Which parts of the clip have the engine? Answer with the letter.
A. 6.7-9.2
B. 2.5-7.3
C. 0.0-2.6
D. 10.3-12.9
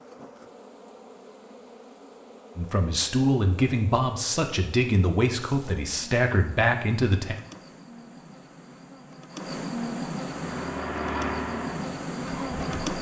D.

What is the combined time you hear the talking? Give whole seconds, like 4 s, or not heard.
5 s.